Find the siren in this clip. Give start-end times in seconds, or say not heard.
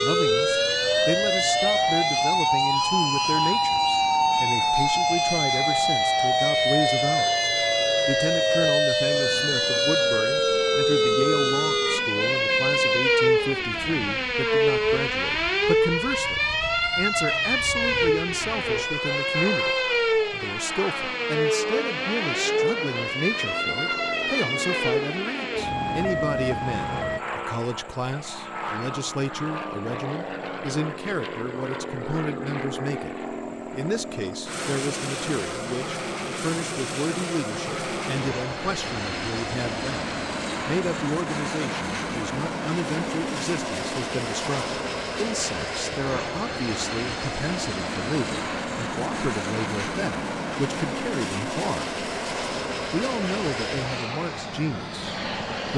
0.0-27.2.